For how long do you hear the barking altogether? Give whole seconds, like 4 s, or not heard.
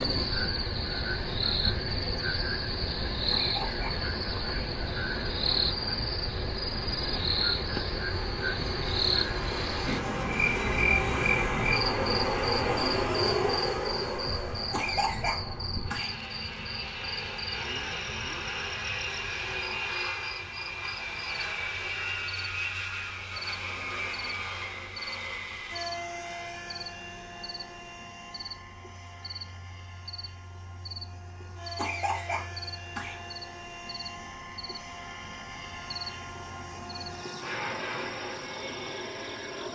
not heard.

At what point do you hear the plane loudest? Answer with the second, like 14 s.
13 s.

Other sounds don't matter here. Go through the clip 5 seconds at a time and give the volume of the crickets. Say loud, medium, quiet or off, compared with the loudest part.
loud, loud, loud, medium, quiet, quiet, quiet, quiet.